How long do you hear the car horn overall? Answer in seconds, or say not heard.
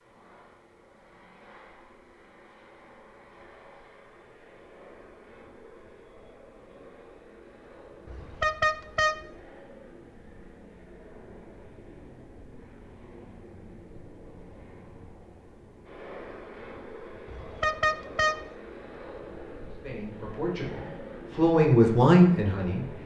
2 s.